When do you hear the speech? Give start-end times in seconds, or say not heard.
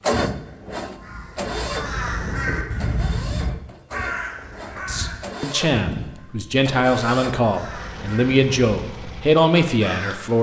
4.7-10.3.